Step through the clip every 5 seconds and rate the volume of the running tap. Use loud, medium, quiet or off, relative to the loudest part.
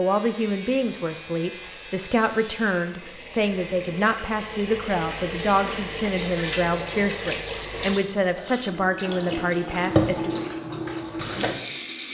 medium, loud, loud.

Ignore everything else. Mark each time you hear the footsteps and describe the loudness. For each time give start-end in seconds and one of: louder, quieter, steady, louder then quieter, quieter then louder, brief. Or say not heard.
not heard.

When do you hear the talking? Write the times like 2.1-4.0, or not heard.
0.0-10.4.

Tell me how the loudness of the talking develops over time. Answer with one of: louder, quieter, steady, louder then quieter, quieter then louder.
steady.